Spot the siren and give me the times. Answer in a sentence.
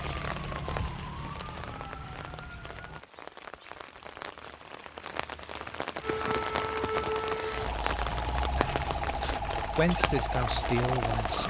You can hear the siren from 0.0 to 3.0 s and from 6.0 to 11.4 s.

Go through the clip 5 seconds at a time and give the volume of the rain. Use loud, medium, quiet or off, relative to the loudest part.
medium, loud, loud.